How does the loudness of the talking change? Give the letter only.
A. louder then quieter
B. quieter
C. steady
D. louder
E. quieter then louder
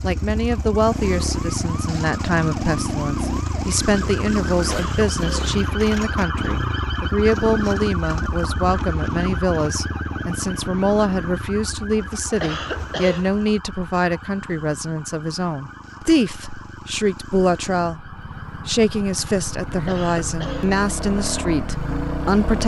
C.